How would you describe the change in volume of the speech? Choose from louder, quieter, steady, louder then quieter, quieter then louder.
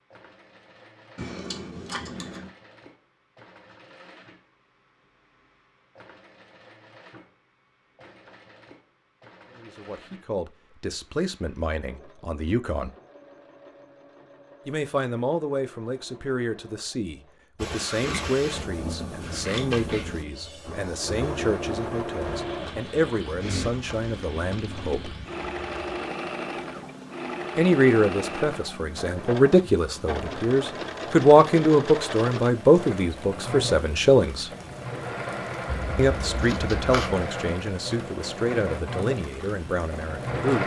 louder then quieter.